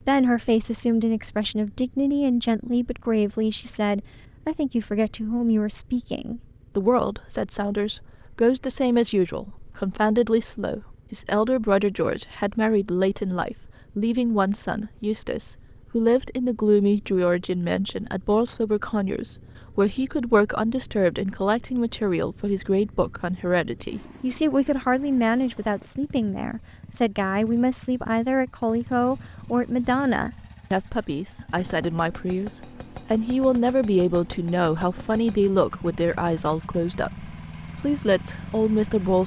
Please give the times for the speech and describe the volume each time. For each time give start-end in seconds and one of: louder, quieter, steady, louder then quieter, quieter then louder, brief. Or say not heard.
0.1-39.2 steady.